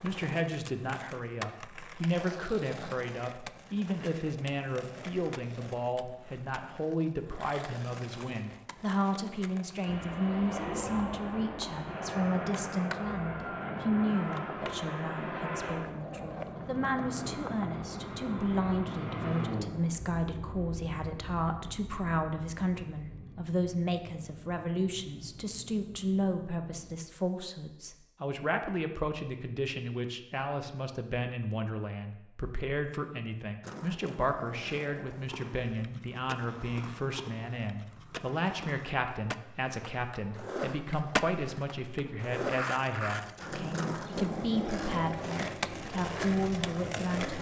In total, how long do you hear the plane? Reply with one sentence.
You can hear the plane for 17 seconds altogether.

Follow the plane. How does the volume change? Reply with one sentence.
The loudness of the plane goes down.